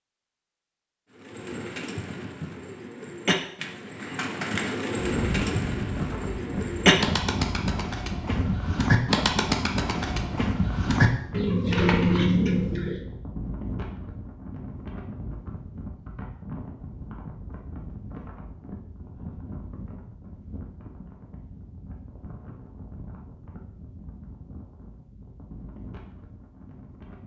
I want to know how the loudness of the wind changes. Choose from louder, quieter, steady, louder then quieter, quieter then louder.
quieter.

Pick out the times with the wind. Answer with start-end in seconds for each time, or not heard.
5.0-27.2.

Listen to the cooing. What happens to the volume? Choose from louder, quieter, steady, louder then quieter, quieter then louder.
louder.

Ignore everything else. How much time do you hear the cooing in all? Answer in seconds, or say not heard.
12 s.